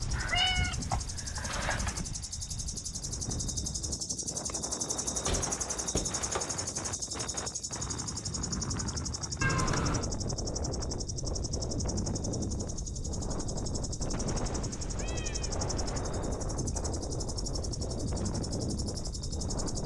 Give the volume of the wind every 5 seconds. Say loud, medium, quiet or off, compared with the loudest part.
medium, loud, loud, loud.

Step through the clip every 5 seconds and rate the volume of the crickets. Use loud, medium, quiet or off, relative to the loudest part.
loud, loud, medium, medium.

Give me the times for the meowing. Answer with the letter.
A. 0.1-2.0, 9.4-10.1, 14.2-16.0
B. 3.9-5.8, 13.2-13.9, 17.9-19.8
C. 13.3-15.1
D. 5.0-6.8
A.